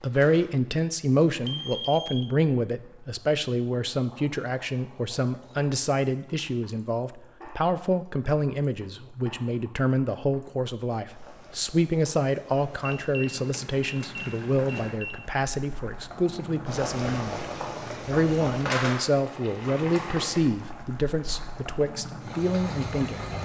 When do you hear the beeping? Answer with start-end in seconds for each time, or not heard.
1.4-2.3, 12.8-15.2.